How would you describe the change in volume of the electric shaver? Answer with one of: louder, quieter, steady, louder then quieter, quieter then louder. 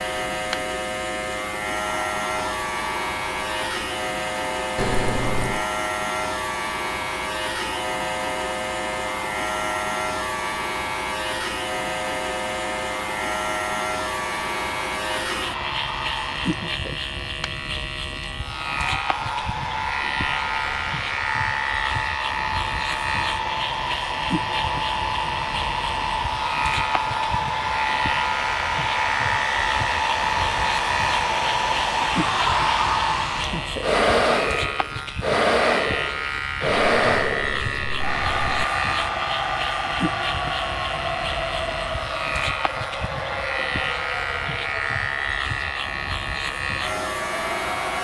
steady.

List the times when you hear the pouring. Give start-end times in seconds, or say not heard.
4.8-5.7, 36.6-38.6.